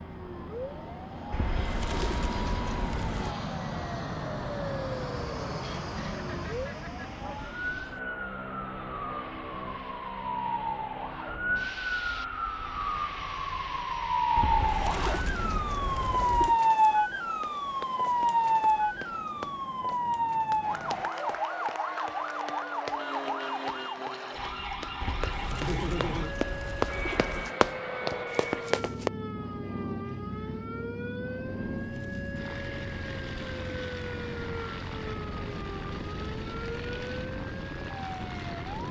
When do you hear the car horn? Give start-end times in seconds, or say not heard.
not heard.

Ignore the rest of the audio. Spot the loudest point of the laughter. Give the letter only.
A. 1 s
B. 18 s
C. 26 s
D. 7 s
C.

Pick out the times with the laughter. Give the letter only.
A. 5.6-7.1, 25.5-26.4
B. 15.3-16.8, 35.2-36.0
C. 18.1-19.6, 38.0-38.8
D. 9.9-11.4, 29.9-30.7
A.